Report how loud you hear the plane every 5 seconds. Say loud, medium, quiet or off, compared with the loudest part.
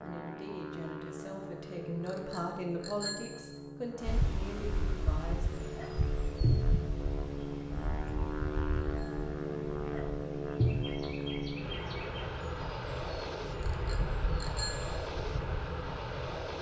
medium, loud, loud, loud.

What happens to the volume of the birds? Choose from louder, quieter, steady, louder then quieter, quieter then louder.
quieter then louder.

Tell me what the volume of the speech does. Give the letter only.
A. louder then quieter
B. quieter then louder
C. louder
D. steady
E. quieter
A.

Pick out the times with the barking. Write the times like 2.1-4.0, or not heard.
5.8-6.7, 9.9-10.8.